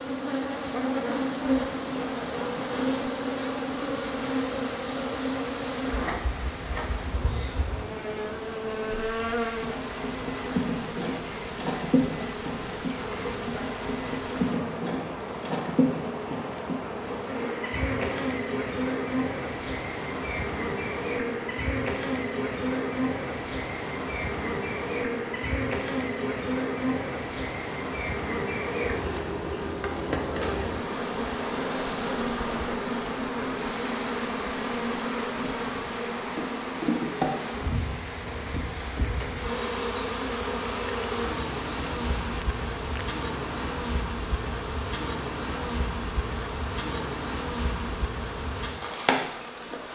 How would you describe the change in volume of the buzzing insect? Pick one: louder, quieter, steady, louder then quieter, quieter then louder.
steady.